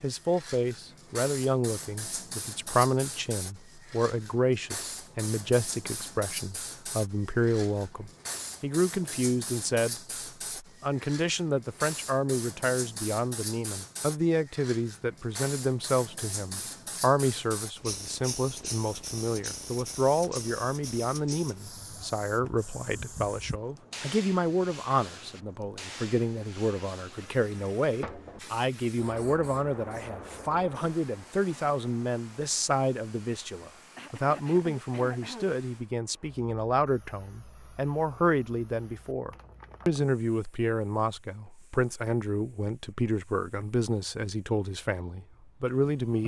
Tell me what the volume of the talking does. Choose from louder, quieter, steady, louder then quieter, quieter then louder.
steady.